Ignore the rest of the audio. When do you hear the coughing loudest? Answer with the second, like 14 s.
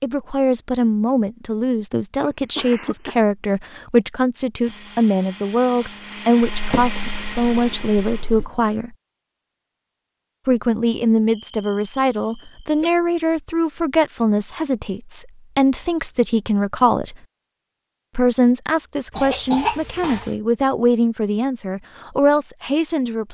20 s.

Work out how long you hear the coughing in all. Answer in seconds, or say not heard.
4 s.